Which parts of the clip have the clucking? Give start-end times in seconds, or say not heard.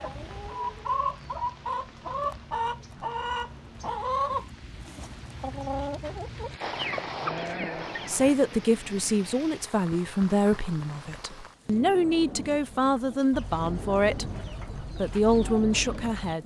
0.0-8.4, 12.1-16.4.